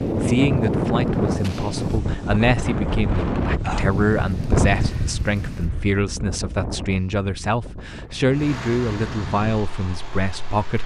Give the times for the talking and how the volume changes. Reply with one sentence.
You can hear the talking from 0.2 to 10.8 s, at a steady volume.